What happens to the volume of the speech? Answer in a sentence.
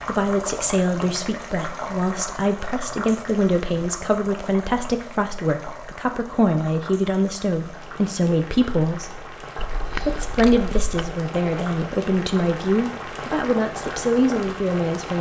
The volume of the speech stays about the same.